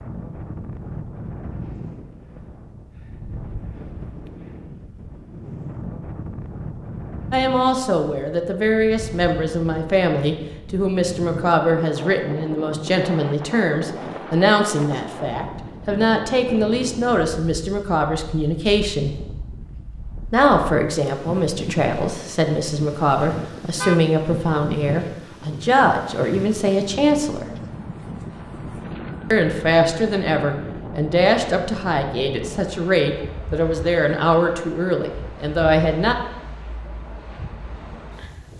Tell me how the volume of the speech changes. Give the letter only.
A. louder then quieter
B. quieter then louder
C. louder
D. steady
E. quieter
D.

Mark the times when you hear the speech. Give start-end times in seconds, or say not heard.
7.3-19.1, 20.3-27.4, 29.3-36.1.